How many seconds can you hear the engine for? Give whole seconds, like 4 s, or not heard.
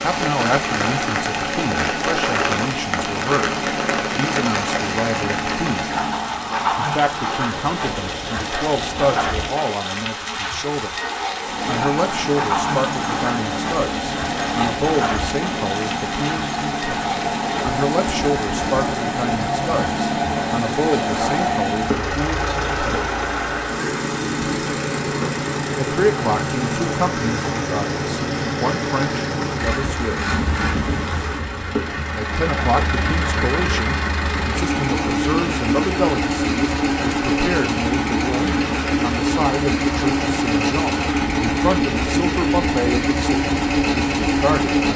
40 s.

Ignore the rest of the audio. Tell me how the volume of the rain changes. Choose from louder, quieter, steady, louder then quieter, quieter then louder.
quieter.